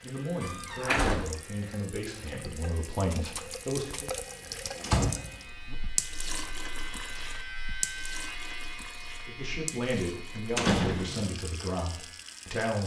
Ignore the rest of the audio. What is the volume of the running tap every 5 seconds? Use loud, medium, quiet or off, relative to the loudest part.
loud, loud, medium.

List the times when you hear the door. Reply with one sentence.
You can hear the door from 0.4 to 1.4 s, from 4.8 to 5.8 s and from 10.6 to 11.2 s.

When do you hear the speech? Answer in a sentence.
The speech can be heard from 0.0 to 4.1 s and from 9.2 to 12.8 s.